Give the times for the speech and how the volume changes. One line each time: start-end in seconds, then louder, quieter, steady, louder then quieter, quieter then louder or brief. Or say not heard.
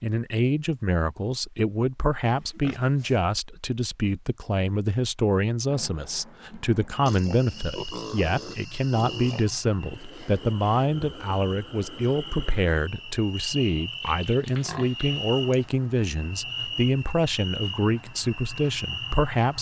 0.0-19.5 steady.